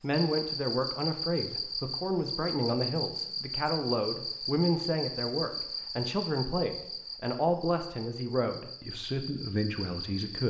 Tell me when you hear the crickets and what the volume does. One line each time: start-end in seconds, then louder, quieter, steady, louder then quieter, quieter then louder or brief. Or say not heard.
0.0-10.4 quieter.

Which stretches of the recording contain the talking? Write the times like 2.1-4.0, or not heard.
0.0-10.4.